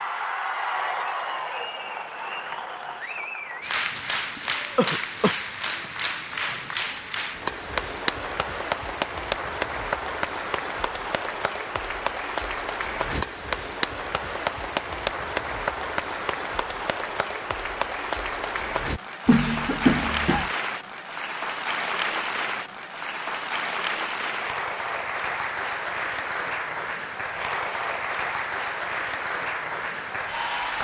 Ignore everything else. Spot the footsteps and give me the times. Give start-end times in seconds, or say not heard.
not heard.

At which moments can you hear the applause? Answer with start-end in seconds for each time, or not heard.
0.0-30.7.